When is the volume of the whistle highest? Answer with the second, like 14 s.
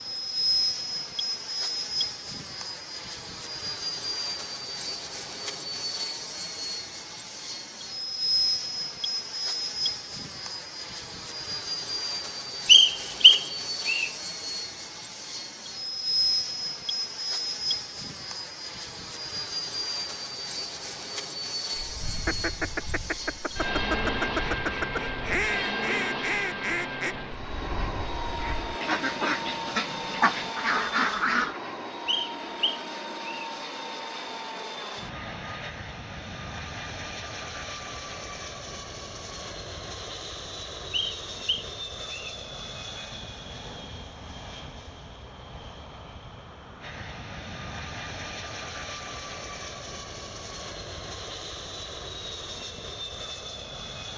13 s.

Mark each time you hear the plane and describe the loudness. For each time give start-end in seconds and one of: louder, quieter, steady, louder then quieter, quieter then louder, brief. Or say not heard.
0.0-54.1 quieter.